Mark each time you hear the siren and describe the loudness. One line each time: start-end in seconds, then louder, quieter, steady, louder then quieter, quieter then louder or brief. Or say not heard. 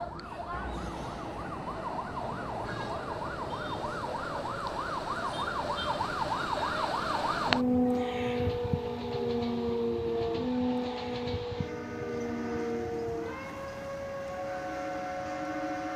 0.0-15.9 louder then quieter.